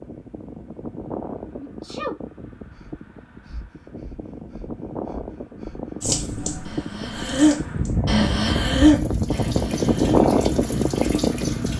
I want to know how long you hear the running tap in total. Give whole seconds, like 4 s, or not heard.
6 s.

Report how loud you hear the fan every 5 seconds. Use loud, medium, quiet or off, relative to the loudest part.
quiet, medium, loud.